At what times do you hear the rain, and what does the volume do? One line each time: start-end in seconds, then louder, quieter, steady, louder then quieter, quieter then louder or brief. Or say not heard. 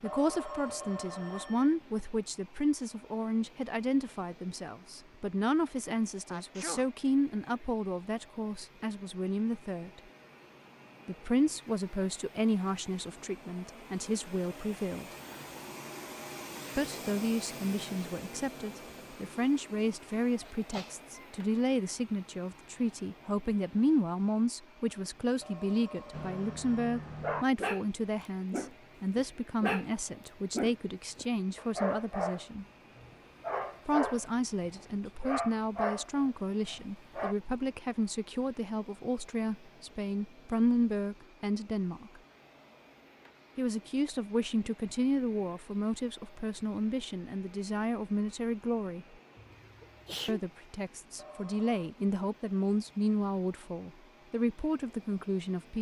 not heard.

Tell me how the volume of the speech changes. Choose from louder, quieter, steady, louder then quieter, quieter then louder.
steady.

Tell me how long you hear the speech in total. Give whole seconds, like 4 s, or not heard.
49 s.